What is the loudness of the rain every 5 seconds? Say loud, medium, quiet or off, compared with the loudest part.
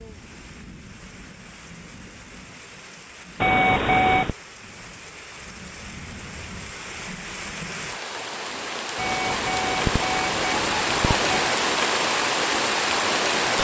quiet, medium, loud.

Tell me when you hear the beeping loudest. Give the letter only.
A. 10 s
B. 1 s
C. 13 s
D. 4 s
D.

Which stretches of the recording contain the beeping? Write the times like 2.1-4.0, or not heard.
3.4-4.3, 8.9-11.5.